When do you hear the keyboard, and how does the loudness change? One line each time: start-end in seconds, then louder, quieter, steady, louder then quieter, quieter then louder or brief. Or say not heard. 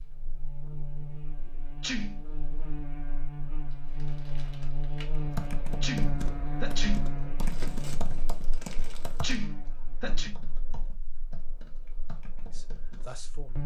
5.2-13.1 quieter.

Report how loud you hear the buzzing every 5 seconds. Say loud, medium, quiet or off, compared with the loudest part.
loud, loud, medium.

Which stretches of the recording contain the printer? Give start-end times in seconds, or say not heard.
not heard.